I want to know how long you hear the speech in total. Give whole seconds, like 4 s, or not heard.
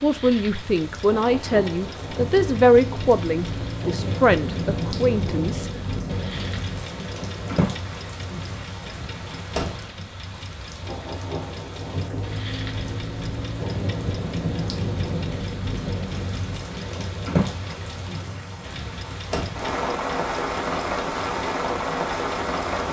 6 s.